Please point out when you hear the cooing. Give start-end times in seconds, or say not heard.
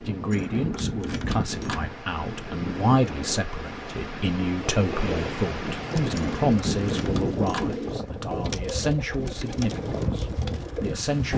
5.8-11.0.